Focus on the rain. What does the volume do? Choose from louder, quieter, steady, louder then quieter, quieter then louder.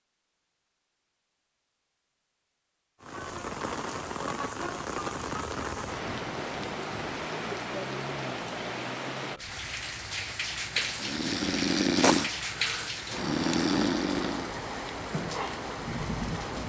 steady.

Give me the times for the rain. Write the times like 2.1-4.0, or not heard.
3.0-16.6.